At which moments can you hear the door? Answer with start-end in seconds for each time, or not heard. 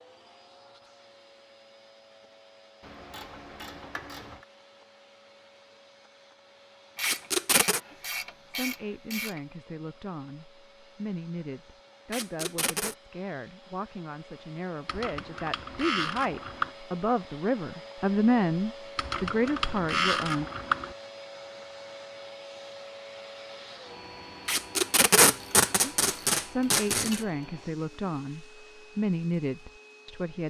not heard.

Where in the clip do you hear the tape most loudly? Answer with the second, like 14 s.
25 s.